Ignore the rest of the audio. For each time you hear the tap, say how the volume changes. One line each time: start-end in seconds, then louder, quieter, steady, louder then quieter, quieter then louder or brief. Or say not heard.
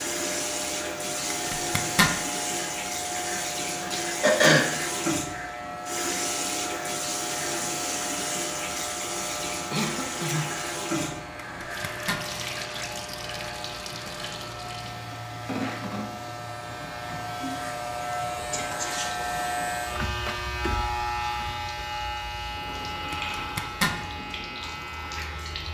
0.0-25.6 quieter.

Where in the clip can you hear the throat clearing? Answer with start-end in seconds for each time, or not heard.
4.0-4.7, 9.7-11.2, 18.5-19.6.